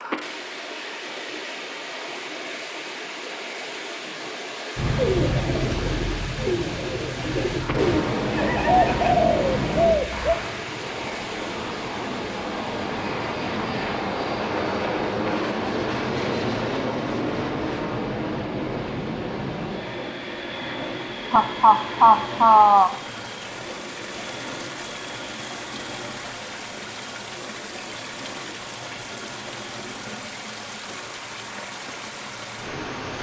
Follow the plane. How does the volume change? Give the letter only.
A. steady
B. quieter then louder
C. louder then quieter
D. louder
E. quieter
E.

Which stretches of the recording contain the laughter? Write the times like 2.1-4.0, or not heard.
8.3-9.1, 21.3-22.9.